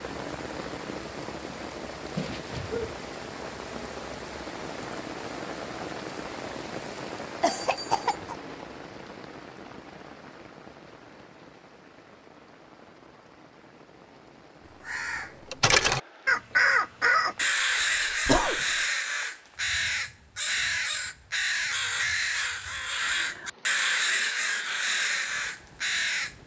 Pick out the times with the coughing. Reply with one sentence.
You can hear the coughing from 7.4 to 8.3 s and from 17.4 to 18.6 s.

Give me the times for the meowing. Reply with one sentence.
The meowing can be heard from 2.1 to 3.0 s.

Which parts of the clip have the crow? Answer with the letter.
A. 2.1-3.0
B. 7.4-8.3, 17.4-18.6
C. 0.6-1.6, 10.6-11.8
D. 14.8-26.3
D.